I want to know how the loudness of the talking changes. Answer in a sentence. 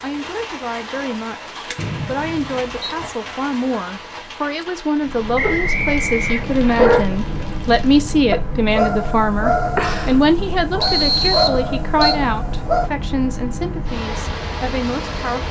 The volume of the talking goes up, then down.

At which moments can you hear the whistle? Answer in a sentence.
You can hear the whistle from 1.8 to 2.9 s, from 5.3 to 6.9 s and from 10.8 to 12.2 s.